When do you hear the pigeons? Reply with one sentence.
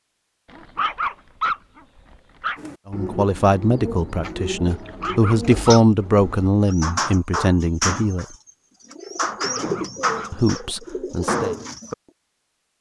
The pigeons can be heard from 2.5 to 11.9 s.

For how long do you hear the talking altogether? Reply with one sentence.
You can hear the talking for 7 seconds altogether.